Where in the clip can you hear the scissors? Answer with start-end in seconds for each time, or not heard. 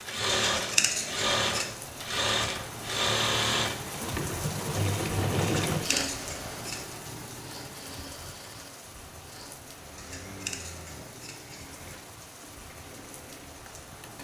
0.5-1.8, 5.4-6.8, 9.9-11.8.